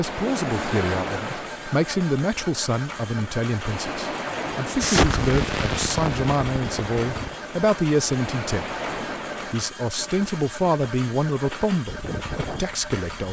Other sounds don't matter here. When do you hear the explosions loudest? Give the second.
5 s.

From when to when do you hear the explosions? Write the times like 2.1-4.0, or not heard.
4.8-7.3.